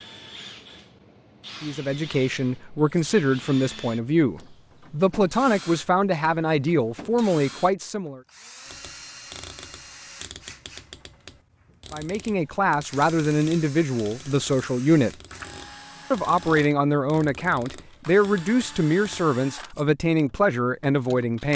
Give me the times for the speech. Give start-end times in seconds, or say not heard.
1.6-8.2, 11.9-15.1, 16.1-21.5.